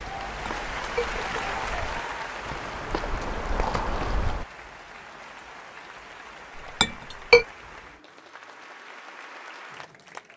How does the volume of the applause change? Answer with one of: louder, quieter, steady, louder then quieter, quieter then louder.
quieter.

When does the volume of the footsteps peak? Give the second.
4 s.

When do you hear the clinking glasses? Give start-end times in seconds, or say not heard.
0.5-1.4, 6.8-7.5.